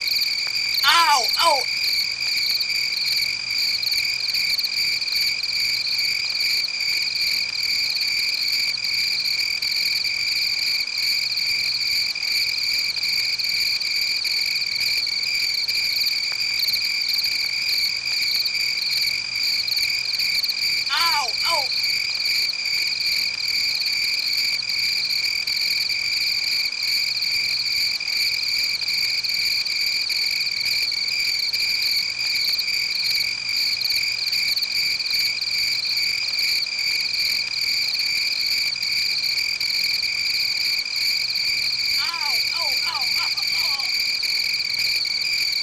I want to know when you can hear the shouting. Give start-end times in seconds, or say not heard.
0.8-1.6, 20.9-21.7, 42.0-44.0.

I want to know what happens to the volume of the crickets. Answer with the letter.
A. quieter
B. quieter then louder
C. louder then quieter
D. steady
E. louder
D.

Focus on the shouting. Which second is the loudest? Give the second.
1 s.